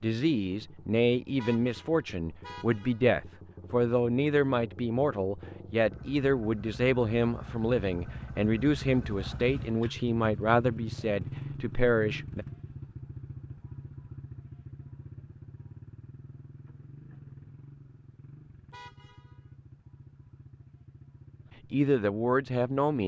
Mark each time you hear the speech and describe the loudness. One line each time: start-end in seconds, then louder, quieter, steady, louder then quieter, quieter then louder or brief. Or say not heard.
0.0-12.4 steady
21.7-23.0 brief.